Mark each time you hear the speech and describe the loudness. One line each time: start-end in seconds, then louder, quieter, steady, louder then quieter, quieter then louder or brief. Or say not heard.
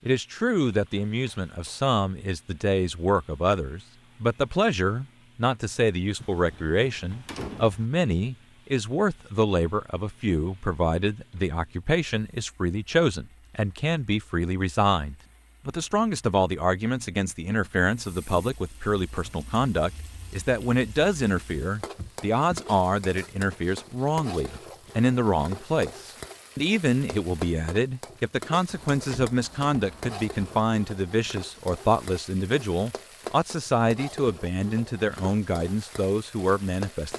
0.1-37.1 steady.